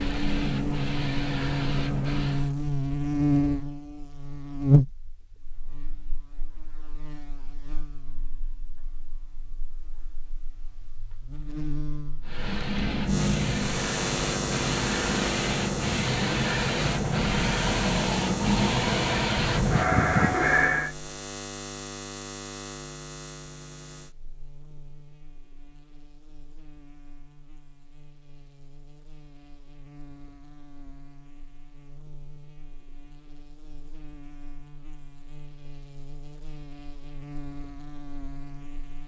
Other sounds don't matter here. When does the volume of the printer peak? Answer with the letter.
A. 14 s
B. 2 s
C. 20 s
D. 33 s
C.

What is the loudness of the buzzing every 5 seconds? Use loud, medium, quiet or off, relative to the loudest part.
loud, quiet, medium, medium, quiet, quiet, quiet, quiet.